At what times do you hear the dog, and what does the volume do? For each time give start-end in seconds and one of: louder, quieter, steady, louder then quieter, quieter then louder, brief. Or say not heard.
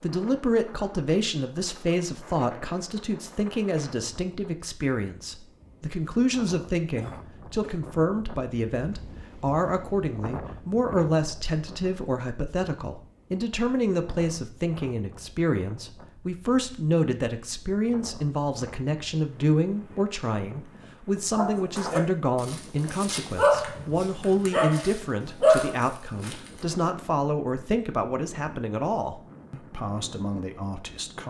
21.4-26.5 louder.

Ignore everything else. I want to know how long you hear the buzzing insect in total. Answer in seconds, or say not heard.
not heard.